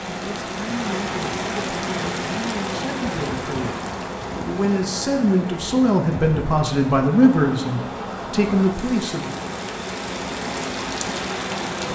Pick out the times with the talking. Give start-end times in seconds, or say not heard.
0.1-9.4.